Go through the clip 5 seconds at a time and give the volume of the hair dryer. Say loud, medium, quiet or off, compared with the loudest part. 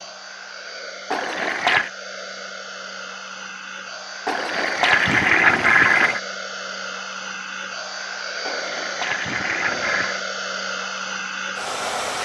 medium, loud, loud.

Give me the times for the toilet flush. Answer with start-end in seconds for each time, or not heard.
1.1-1.9, 4.2-6.2, 8.4-10.2.